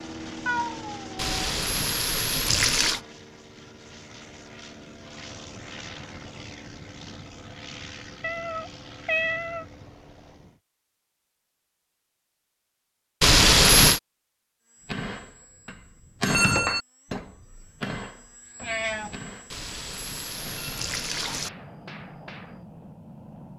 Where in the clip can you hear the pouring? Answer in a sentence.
The pouring can be heard from 1.1 to 3.0 s, from 13.2 to 14.0 s and from 19.5 to 21.5 s.